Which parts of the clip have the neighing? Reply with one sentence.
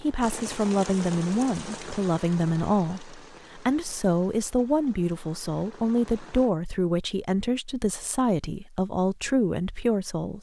The neighing can't be heard in this clip.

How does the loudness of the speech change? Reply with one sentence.
The volume of the speech stays about the same.